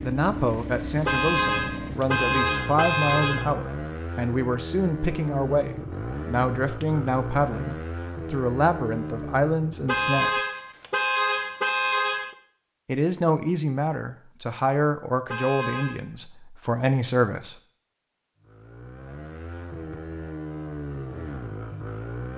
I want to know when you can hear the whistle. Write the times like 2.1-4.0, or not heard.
not heard.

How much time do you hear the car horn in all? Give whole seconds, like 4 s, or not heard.
6 s.